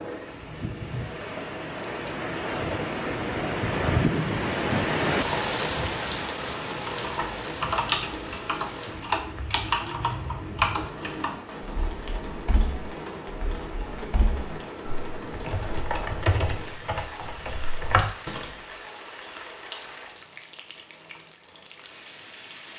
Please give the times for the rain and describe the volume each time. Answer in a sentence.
The rain can be heard from 0.0 to 22.7 s, getting quieter.